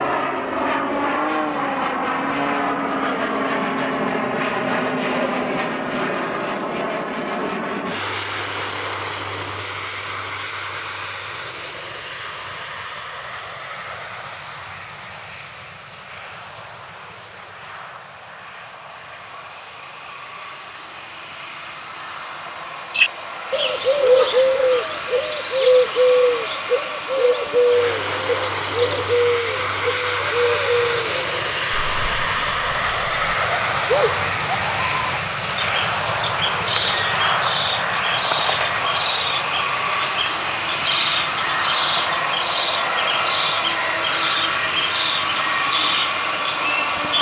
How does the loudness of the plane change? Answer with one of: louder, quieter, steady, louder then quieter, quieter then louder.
quieter then louder.